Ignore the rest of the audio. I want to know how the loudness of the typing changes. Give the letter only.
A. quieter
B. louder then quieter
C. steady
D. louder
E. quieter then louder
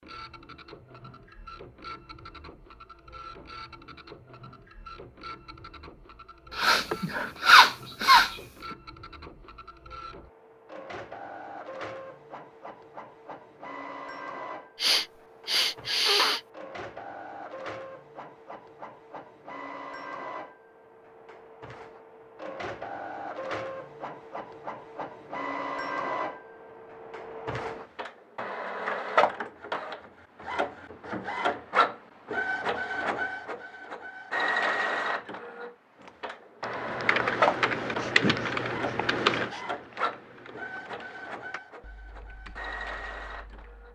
A.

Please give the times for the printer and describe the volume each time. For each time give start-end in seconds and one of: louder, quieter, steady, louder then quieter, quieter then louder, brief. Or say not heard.
0.0-43.8 louder.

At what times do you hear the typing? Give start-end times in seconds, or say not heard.
36.6-43.8.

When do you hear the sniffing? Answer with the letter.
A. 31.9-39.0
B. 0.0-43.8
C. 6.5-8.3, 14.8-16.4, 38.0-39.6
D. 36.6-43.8
C.